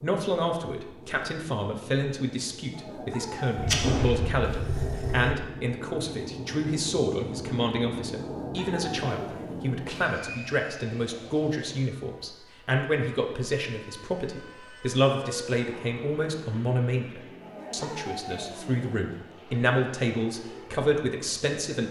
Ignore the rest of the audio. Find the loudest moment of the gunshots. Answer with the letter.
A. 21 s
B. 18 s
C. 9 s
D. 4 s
D.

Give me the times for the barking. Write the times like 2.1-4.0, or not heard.
2.7-5.3, 8.2-10.1, 17.4-19.1.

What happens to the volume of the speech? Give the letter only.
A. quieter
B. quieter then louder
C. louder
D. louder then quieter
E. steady
E.